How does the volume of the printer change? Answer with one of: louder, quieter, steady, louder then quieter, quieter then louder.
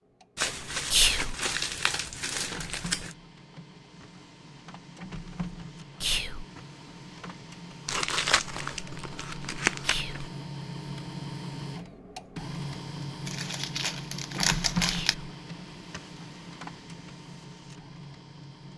louder.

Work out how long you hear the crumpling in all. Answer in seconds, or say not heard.
7 s.